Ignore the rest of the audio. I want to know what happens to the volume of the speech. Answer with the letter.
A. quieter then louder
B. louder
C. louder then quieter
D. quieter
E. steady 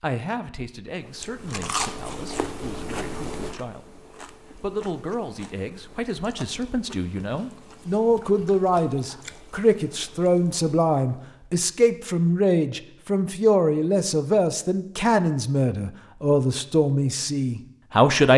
B.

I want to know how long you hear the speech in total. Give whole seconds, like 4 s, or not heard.
18 s.